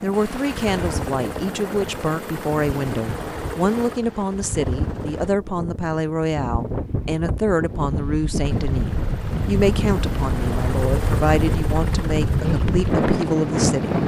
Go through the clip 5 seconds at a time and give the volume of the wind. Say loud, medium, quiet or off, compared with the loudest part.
medium, medium, loud.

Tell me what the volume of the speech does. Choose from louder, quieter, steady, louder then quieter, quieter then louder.
steady.